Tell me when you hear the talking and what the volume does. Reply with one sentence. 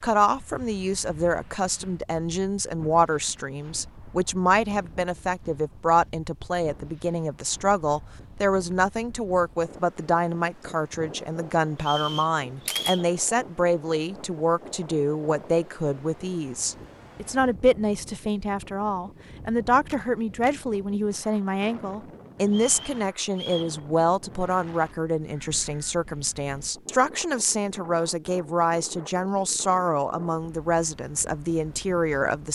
You can hear the talking from 0.0 to 32.5 s, at a steady volume.